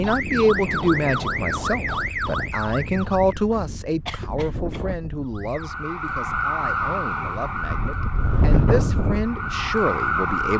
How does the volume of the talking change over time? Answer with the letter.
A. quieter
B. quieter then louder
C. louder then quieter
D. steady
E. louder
B.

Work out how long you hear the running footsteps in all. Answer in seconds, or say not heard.
not heard.